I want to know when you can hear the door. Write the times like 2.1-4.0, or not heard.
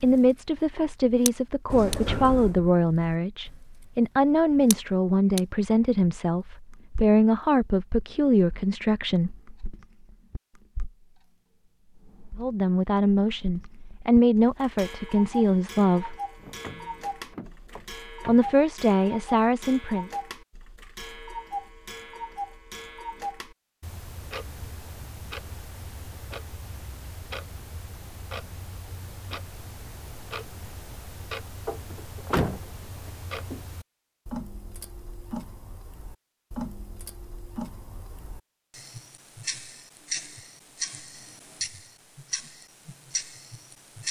1.7-2.6, 16.4-18.6, 31.6-33.6.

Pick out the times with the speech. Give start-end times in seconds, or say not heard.
0.0-9.3, 12.3-16.1, 18.2-20.1.